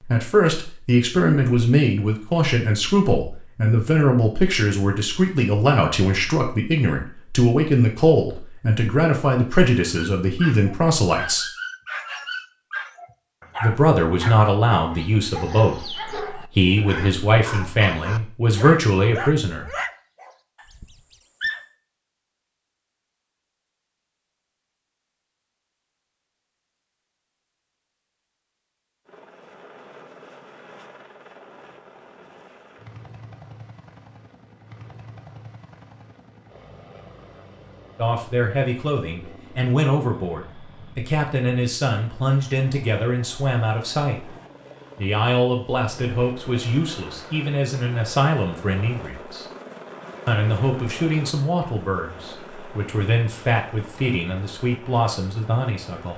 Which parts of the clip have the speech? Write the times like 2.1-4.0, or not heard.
0.0-11.4, 13.6-19.6, 38.0-44.3, 45.0-49.5, 50.2-56.1.